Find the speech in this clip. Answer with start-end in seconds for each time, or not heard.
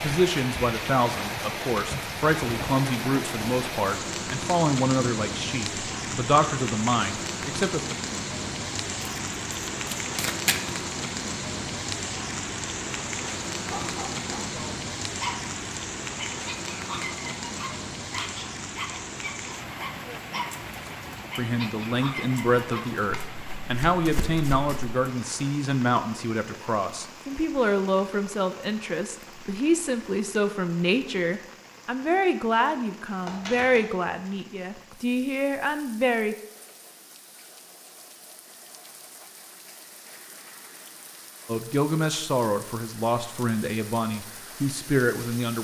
0.0-7.8, 21.4-36.4, 41.5-45.5.